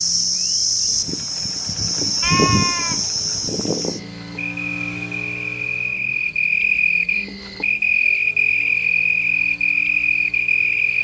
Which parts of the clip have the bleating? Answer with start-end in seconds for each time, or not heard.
2.2-3.0.